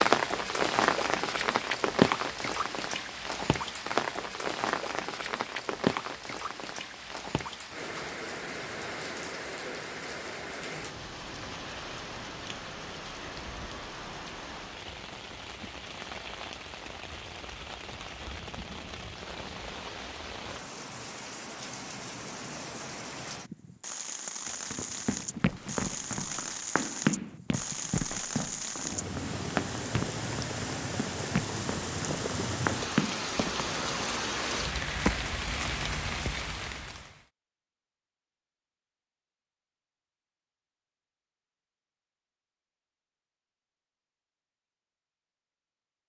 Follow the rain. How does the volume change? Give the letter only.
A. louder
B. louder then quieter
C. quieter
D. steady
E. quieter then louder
E.